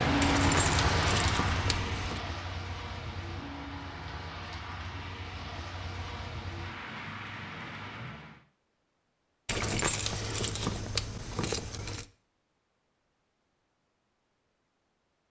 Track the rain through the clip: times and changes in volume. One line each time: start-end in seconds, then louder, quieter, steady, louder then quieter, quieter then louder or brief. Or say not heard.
0.0-8.4 quieter.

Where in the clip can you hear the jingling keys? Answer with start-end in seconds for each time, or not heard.
0.2-2.2, 9.4-12.1.